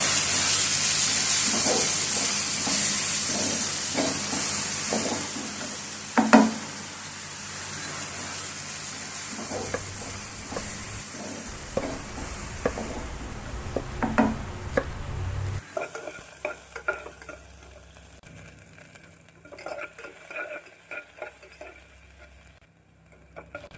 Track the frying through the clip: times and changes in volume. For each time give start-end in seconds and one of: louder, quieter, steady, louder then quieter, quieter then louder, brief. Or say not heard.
0.0-23.7 quieter.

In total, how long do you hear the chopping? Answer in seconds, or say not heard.
6 s.